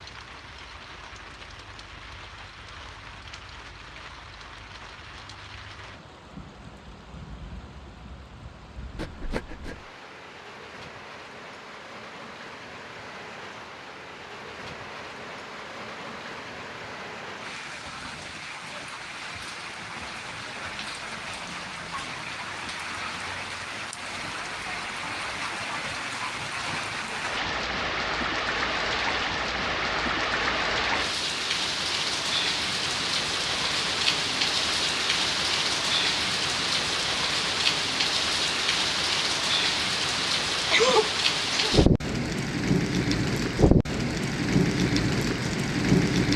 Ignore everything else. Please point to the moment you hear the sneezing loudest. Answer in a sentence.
The volume of the sneezing peaks at 41 seconds.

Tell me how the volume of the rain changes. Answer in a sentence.
The volume of the rain goes up.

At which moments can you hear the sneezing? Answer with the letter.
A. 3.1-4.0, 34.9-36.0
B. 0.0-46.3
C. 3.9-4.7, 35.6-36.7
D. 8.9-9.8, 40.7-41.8
D.